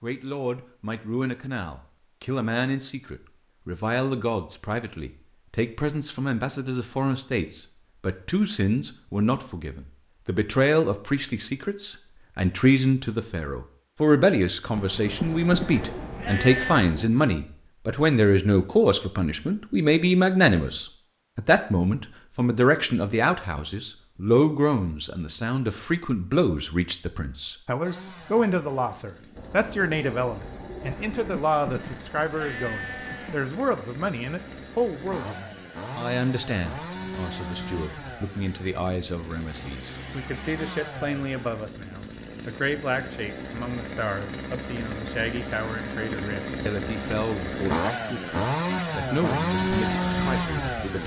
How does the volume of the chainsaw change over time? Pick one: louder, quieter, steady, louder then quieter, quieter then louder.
louder.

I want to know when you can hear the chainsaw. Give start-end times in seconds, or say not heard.
27.8-51.0.